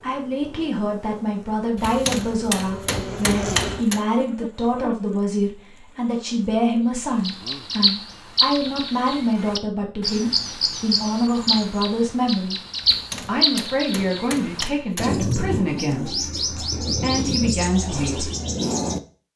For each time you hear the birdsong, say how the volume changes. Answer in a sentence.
You can hear the birdsong from 7.2 to 19.0 s, at a steady volume.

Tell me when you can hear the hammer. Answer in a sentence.
The hammer can be heard from 1.8 to 4.0 s and from 12.8 to 15.3 s.